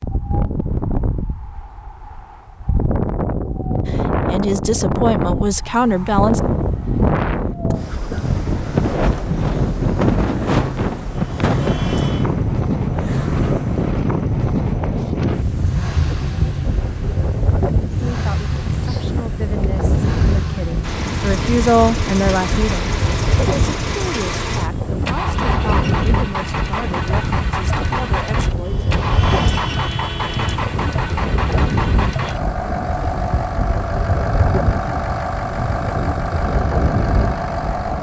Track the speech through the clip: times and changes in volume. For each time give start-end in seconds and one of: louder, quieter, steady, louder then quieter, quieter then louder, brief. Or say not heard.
3.9-6.4 brief
18.0-28.9 louder then quieter.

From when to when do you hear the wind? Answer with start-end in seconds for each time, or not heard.
0.0-37.9.